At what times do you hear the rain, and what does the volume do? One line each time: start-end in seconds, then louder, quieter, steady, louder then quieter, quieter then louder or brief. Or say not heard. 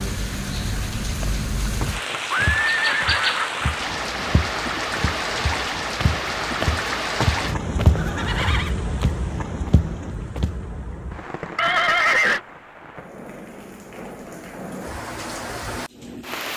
0.0-16.5 quieter.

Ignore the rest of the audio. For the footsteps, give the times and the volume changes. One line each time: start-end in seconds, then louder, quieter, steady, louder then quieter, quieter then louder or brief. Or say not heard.
1.2-10.6 louder then quieter.